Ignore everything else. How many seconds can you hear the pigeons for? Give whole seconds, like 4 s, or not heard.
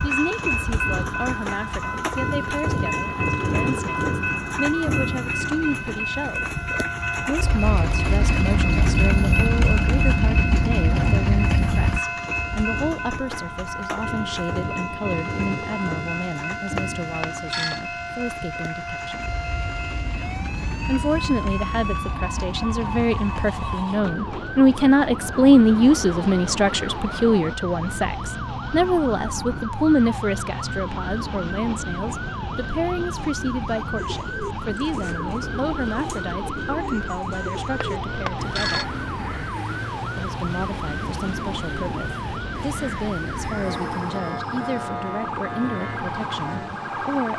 10 s.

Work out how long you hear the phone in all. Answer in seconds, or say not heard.
2 s.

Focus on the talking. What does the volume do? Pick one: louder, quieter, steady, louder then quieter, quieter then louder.
louder then quieter.